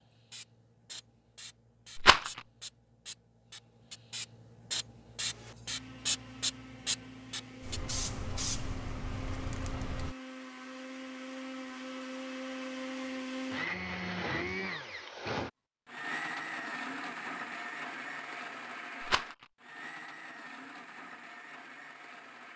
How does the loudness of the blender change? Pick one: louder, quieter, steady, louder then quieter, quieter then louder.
louder then quieter.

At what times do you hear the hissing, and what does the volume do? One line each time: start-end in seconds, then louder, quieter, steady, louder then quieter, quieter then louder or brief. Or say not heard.
0.0-10.2 louder.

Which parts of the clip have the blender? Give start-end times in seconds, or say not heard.
5.2-22.5.